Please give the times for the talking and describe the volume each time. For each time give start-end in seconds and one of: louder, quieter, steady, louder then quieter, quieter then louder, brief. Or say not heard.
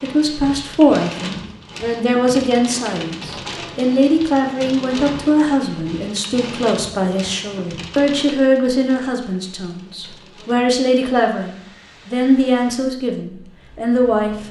0.0-14.3 steady.